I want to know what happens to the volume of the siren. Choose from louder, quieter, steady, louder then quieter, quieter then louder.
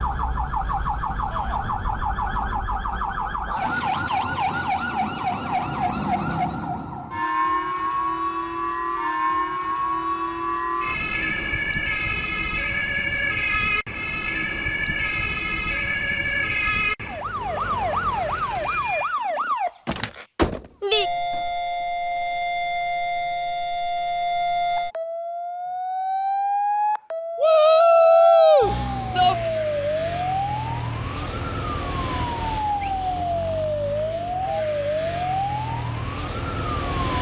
steady.